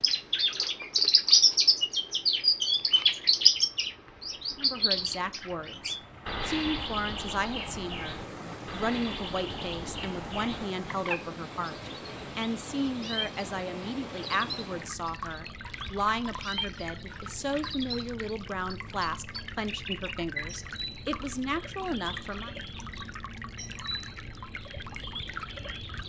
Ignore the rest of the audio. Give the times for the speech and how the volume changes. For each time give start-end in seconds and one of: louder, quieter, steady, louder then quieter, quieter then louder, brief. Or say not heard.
4.5-22.5 steady.